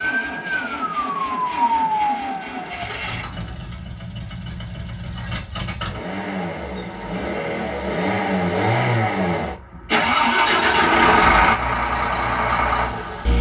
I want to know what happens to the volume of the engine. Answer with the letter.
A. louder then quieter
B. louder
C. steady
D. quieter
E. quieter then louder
B.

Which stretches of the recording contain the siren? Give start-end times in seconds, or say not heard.
0.1-2.9.